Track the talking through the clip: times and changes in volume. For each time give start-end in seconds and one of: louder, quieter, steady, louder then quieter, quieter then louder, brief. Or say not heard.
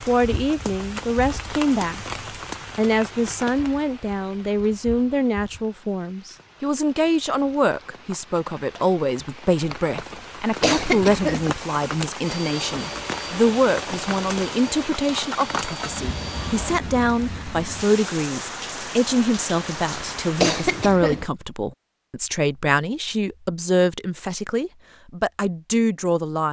0.0-2.0 brief
2.8-26.4 steady.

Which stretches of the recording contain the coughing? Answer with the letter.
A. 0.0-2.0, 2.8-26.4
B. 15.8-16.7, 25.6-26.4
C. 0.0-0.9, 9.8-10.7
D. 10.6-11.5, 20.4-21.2
D.